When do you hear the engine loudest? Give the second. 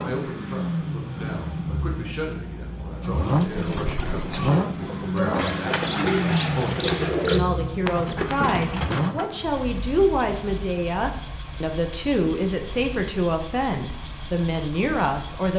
5 s.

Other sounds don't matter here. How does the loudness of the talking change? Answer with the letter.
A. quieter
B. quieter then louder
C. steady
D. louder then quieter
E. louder
E.